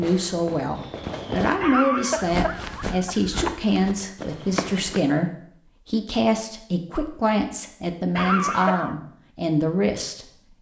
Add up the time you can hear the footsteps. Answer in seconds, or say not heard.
3 s.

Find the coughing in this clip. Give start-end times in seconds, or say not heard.
1.6-3.6, 8.2-8.9.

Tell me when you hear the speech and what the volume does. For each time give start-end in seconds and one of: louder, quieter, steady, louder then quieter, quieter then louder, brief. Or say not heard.
0.0-10.3 steady.